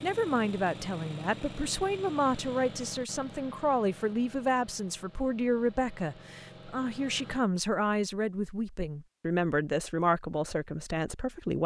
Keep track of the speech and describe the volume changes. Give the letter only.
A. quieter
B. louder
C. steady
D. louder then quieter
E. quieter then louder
C.